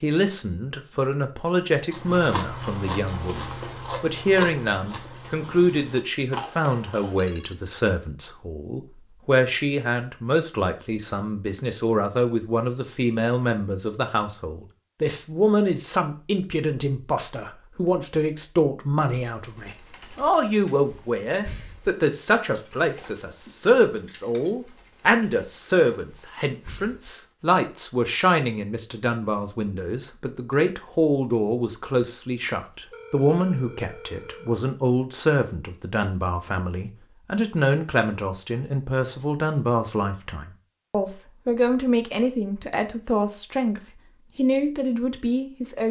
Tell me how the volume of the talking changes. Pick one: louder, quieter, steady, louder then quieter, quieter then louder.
steady.